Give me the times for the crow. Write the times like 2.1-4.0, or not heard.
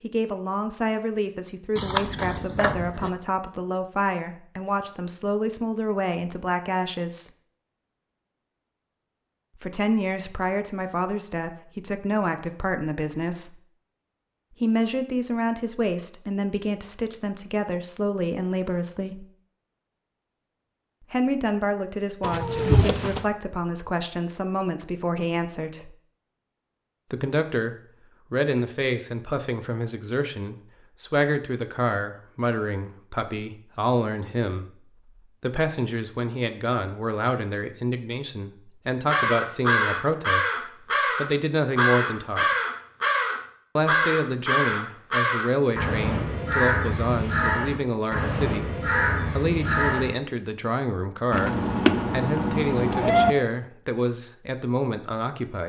39.0-50.1.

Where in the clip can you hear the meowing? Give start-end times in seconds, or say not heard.
1.8-3.1, 22.2-23.2, 51.3-53.4.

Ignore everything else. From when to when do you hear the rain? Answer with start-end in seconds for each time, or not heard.
not heard.